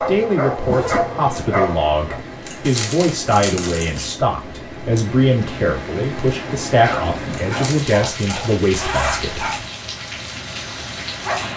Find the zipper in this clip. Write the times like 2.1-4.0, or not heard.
0.6-1.1, 8.7-9.7.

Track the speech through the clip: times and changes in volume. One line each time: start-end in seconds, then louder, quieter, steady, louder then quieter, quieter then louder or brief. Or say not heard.
0.0-9.5 steady.